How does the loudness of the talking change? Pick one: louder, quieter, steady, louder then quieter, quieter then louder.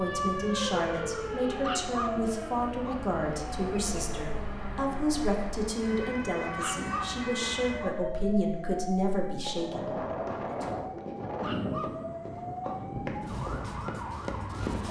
steady.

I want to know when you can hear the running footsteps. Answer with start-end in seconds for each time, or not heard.
9.1-14.8.